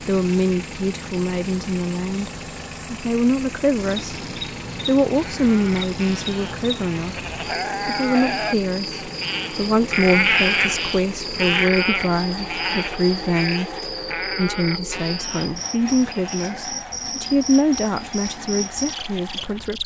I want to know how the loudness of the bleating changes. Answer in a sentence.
The volume of the bleating goes up, then down.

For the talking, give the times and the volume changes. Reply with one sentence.
You can hear the talking briefly from 0.1 to 2.3 s; briefly from 2.9 to 4.2 s; briefly from 4.8 to 7.2 s; and from 7.8 to 19.8 s, at a steady volume.